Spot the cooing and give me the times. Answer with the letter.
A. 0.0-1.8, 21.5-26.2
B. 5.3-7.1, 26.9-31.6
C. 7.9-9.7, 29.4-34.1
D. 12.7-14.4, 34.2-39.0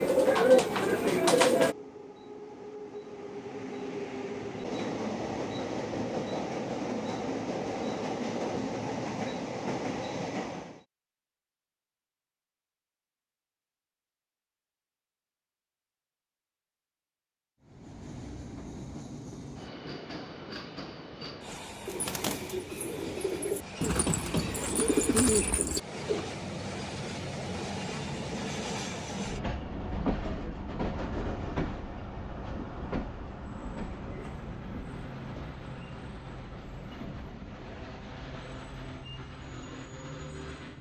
A.